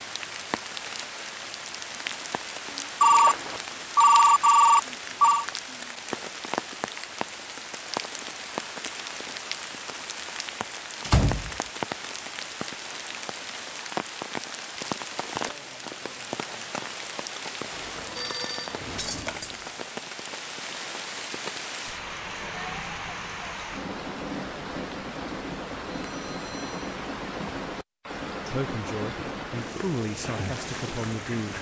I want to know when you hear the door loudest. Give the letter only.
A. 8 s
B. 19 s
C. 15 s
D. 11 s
D.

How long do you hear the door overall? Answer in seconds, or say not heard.
2 s.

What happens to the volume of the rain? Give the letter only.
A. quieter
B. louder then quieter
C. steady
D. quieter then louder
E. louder
C.